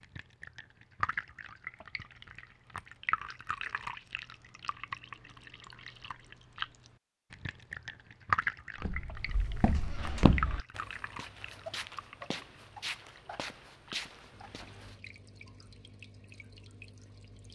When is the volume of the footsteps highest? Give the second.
10 s.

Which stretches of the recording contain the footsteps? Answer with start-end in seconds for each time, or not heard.
8.8-14.9.